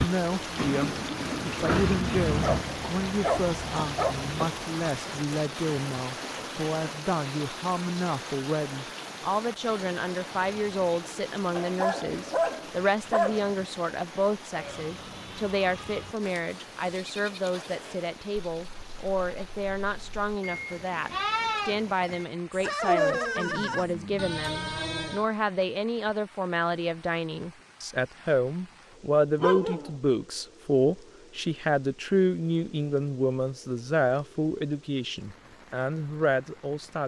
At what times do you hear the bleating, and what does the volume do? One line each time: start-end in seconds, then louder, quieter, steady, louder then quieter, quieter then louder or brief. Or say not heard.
14.5-25.2 louder.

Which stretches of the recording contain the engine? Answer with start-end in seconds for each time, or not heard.
0.0-4.3.